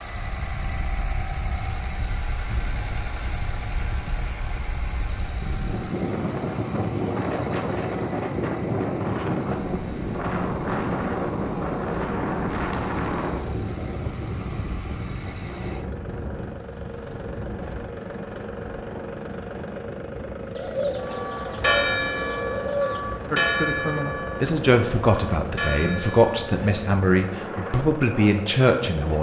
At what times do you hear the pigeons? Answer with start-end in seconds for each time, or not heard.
20.6-23.1.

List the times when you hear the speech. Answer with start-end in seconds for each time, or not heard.
23.3-29.1.